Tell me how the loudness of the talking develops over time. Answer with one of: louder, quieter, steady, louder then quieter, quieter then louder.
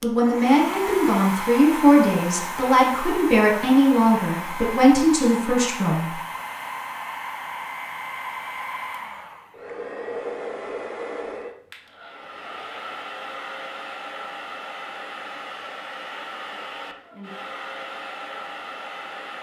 steady.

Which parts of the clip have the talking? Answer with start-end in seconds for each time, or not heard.
0.0-6.2.